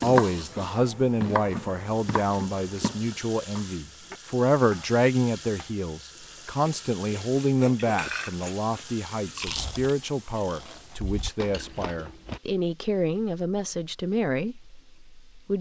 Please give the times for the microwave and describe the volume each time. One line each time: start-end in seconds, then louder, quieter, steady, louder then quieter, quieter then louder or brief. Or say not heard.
not heard.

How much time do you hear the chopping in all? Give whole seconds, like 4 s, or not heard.
6 s.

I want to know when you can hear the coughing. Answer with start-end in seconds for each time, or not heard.
not heard.